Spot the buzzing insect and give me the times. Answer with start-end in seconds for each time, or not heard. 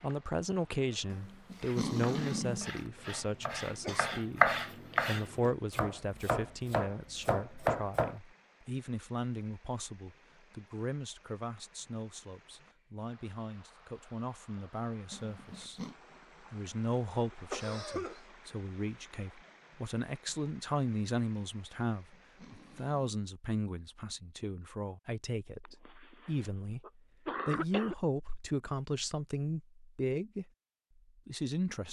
not heard.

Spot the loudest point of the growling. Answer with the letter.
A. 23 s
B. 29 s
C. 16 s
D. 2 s
D.